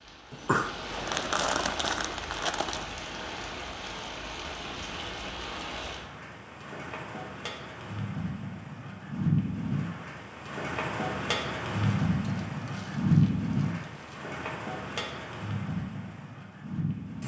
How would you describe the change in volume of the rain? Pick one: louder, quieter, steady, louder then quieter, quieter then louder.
louder then quieter.